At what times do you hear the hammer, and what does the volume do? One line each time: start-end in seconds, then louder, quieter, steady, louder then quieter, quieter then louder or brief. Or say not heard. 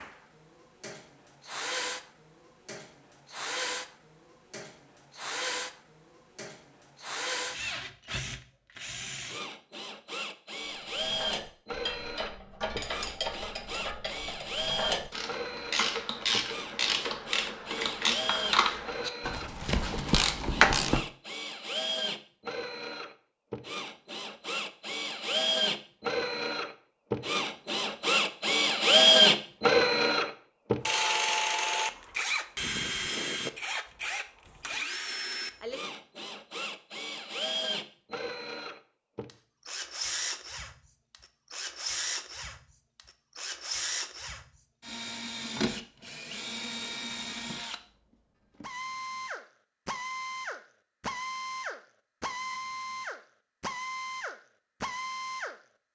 not heard.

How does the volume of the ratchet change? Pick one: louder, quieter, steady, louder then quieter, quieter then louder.
louder.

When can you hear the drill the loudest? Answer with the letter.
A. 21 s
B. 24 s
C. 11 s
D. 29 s
D.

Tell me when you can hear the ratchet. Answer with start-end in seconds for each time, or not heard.
10.7-21.1.